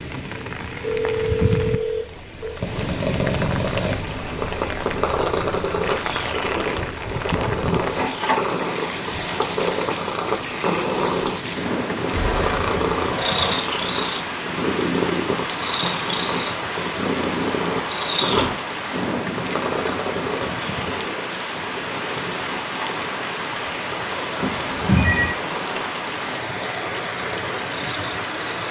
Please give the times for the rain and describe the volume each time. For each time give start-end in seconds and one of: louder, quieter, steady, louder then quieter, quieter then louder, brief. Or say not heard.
0.0-28.6 steady.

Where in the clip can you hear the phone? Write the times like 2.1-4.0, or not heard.
0.8-2.6, 12.1-13.6, 24.4-25.4.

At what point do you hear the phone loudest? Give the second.
25 s.